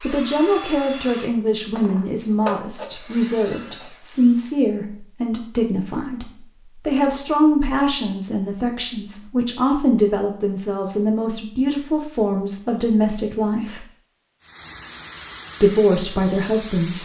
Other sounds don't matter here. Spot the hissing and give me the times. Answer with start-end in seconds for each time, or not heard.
14.4-16.9.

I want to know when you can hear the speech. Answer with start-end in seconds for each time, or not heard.
0.0-6.2, 6.8-13.8, 15.6-16.9.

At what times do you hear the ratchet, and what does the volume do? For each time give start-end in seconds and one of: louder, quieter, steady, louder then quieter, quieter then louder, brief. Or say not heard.
not heard.